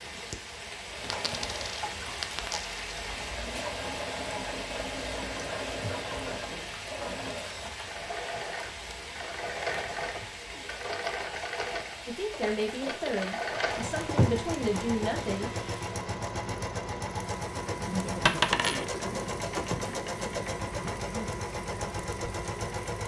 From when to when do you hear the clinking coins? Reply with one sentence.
You can hear the clinking coins from 1.1 to 3.0 s and from 18.2 to 18.9 s.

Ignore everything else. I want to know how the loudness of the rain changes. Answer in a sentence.
The volume of the rain goes down.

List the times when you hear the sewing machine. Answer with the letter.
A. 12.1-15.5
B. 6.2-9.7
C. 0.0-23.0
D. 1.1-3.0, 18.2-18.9
C.